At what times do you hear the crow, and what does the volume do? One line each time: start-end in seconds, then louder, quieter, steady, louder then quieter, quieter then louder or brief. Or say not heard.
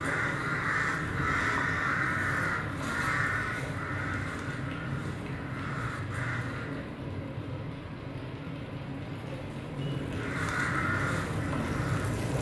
0.0-6.8 quieter
10.2-12.1 brief.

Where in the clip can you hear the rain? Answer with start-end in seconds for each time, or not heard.
0.0-12.3.